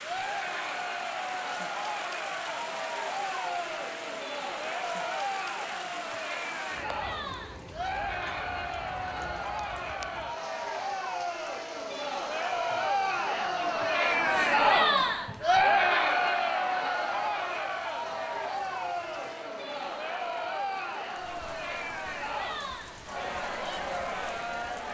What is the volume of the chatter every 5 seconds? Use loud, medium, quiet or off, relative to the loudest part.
medium, medium, loud, loud, medium.